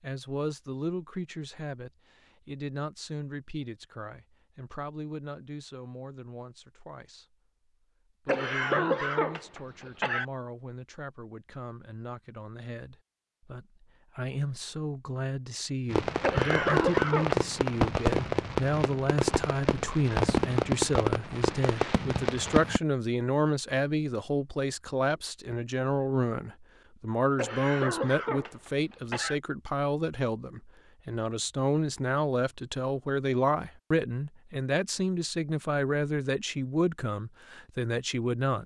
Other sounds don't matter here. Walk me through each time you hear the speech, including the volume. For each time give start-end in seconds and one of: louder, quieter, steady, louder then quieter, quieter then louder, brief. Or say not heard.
0.0-7.3 quieter
8.2-38.6 louder.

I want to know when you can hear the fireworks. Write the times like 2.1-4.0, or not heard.
15.9-22.8.